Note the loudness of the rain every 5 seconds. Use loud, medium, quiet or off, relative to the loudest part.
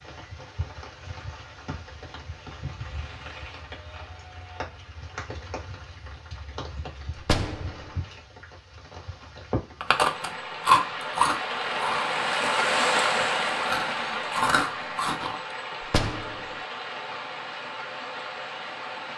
quiet, quiet, loud, medium.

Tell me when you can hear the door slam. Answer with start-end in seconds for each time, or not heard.
7.2-7.9, 15.8-16.6.